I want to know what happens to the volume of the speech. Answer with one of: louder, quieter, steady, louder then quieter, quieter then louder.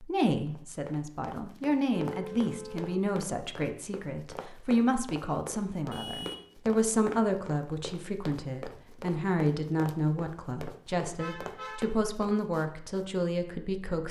steady.